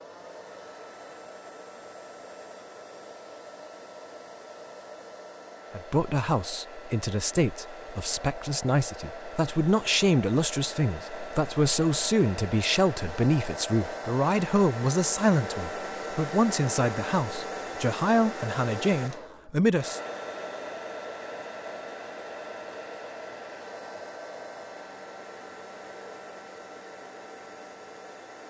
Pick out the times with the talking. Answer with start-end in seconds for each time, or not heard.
5.8-20.0.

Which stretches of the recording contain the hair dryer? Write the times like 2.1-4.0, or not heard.
0.0-28.4.